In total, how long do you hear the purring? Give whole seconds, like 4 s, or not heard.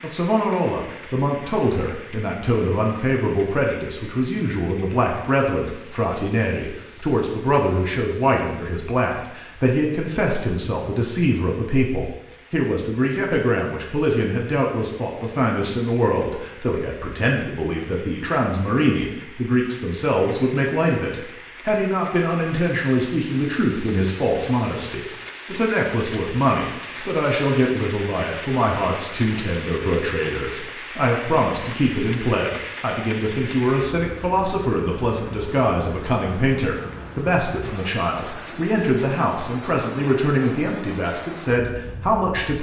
not heard.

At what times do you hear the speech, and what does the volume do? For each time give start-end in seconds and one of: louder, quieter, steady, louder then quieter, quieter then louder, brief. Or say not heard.
0.0-42.5 steady.